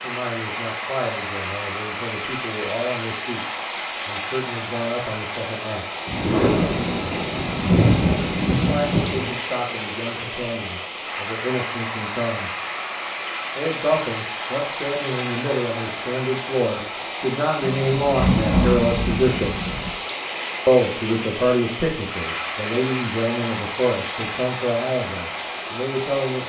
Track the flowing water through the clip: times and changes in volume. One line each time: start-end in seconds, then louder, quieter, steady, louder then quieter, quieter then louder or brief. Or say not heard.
0.0-26.4 steady.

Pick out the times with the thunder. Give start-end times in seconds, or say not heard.
6.0-9.3, 17.6-19.9.